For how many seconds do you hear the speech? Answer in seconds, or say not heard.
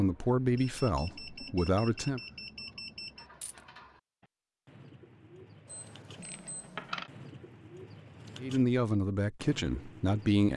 4 s.